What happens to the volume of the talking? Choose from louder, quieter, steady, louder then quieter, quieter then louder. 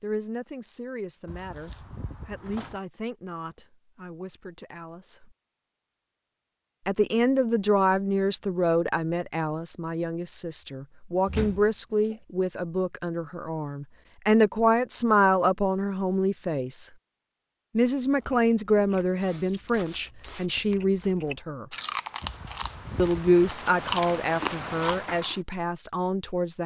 louder.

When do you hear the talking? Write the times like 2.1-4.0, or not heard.
0.0-5.2, 6.8-16.9, 17.8-21.6, 22.9-26.6.